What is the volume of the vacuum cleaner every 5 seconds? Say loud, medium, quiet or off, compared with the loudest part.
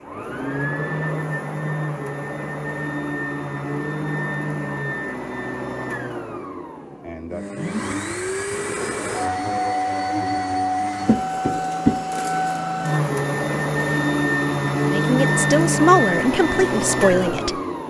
medium, medium, loud, loud.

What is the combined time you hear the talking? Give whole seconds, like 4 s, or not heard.
3 s.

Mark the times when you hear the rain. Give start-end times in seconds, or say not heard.
not heard.